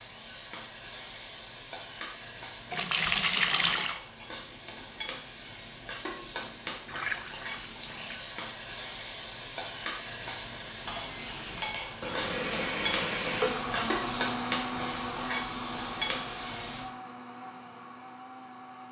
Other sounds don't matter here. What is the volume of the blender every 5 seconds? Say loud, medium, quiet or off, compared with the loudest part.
off, off, loud, medium.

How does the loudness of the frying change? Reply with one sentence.
The volume of the frying goes up.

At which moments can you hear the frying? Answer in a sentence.
You can hear the frying from 0.0 to 16.9 s.